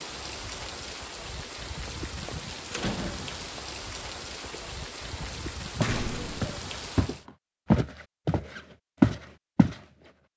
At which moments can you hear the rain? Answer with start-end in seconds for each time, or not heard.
0.0-7.2.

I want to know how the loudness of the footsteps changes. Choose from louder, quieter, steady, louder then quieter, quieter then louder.
louder.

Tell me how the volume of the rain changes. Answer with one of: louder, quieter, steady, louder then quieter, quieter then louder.
steady.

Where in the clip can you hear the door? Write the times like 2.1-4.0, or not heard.
1.9-3.6, 5.8-6.5.